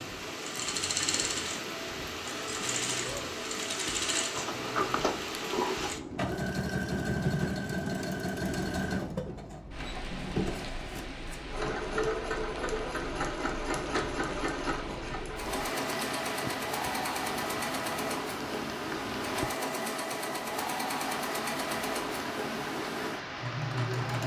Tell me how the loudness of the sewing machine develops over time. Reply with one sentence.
The volume of the sewing machine stays about the same.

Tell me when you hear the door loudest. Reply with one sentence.
The loudest moment of the door is at 5 seconds.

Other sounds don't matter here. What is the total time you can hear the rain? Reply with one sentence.
You can hear the rain for 24 seconds altogether.